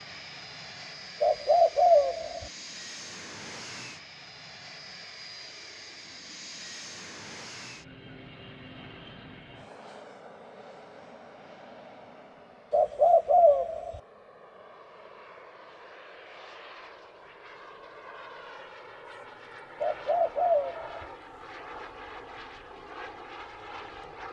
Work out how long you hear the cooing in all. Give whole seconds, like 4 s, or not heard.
4 s.